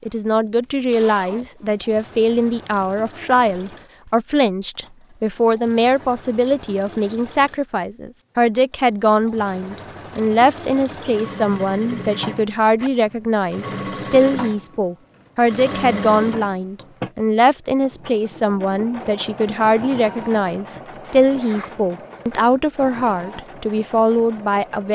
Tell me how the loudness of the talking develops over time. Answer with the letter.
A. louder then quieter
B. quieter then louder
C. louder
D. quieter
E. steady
E.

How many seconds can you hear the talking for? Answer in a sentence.
You can hear the talking for 25 seconds altogether.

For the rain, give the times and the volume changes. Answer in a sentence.
You can't hear the rain here.